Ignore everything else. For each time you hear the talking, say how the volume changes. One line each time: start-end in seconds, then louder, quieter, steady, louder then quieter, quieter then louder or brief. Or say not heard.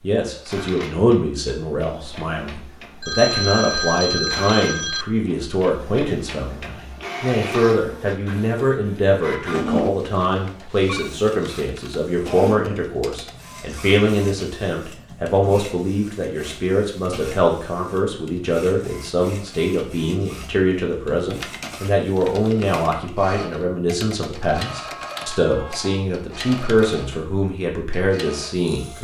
0.0-29.0 steady.